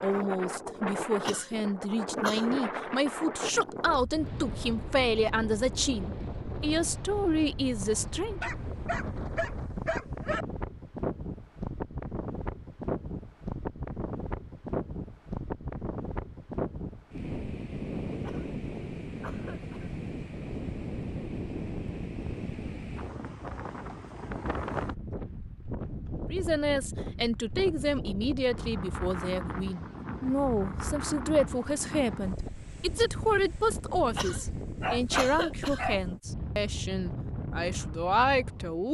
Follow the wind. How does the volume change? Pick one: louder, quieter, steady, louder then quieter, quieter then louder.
steady.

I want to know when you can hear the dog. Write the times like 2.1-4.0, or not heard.
8.4-10.4, 34.8-36.0.